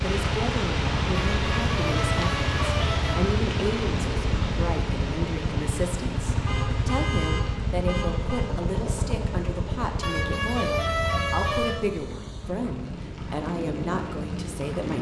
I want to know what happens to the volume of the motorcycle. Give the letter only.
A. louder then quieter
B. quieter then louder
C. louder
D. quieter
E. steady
D.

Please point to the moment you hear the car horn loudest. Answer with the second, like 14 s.
11 s.